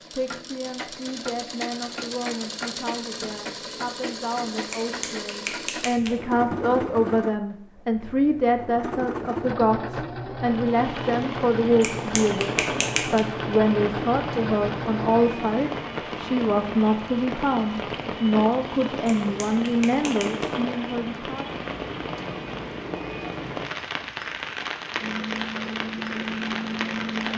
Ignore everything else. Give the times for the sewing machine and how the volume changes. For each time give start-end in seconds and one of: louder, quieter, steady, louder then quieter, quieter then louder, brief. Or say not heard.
0.0-15.3 steady
25.0-27.3 brief.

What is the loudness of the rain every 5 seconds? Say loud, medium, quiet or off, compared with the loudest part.
off, off, loud, loud, loud, loud.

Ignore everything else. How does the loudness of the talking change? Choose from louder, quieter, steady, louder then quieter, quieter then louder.
louder.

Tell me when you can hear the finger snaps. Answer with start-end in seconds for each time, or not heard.
4.7-6.2, 11.8-13.2, 19.1-20.6.